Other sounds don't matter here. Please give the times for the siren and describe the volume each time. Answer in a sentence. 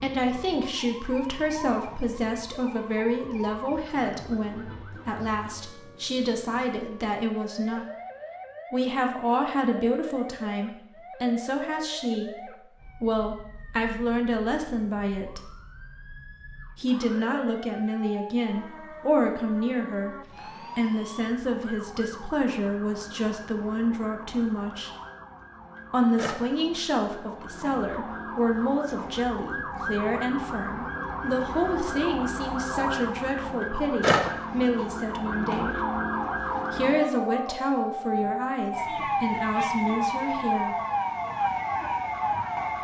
The siren can be heard from 0.0 to 42.7 s, getting louder.